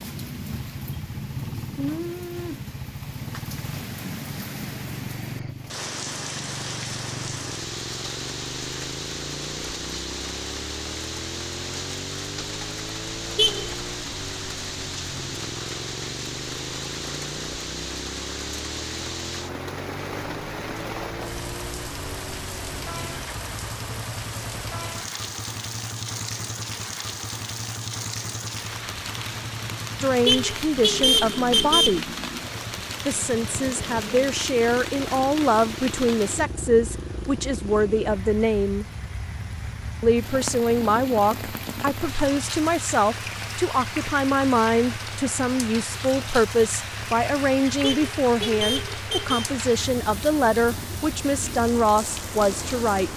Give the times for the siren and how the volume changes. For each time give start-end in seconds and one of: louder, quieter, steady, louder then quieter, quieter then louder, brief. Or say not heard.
not heard.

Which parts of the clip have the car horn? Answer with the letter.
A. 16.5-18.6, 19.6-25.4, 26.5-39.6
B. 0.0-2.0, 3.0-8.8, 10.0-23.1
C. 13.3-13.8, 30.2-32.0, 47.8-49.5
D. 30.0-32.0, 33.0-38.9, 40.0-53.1
C.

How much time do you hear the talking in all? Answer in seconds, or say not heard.
21 s.